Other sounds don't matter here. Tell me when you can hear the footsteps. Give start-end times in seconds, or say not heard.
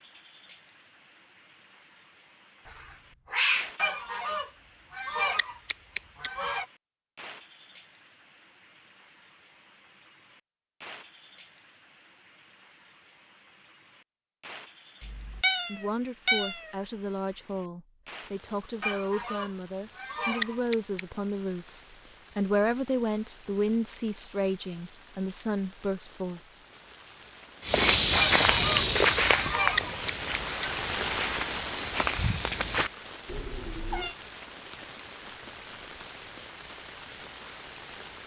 27.6-32.9.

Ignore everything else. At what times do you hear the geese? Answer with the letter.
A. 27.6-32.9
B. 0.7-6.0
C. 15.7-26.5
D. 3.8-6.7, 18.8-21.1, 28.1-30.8
D.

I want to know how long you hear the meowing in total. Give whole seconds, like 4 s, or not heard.
4 s.